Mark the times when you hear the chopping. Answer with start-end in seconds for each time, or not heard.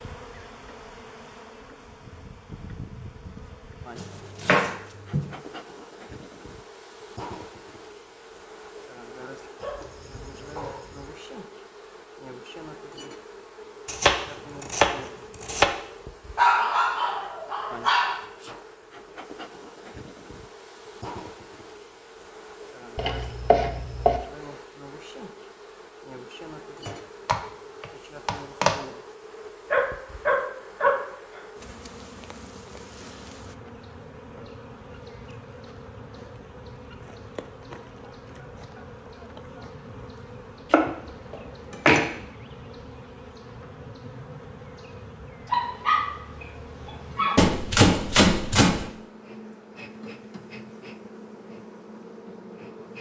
4.0-5.3, 13.8-15.7, 22.9-24.2, 26.9-28.8, 40.7-42.1, 47.4-48.9.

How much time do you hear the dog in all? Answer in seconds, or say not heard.
7 s.